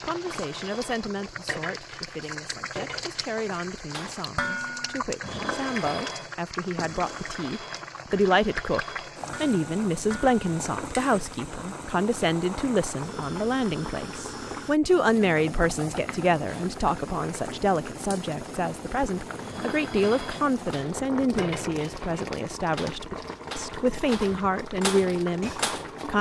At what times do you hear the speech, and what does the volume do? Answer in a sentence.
You can hear the speech from 0.0 to 26.1 s, getting louder.